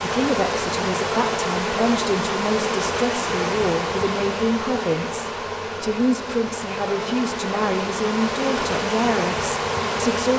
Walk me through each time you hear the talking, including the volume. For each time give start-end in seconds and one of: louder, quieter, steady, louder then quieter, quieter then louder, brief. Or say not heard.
0.0-10.3 steady.